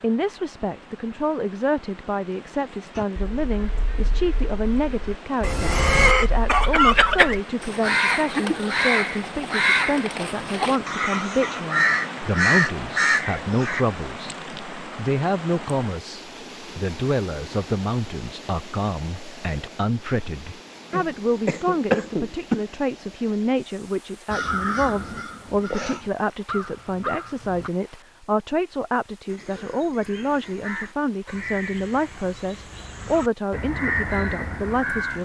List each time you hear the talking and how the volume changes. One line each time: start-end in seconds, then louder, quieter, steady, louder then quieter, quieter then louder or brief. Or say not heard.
0.0-35.2 steady.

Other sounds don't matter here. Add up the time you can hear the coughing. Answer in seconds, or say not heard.
4 s.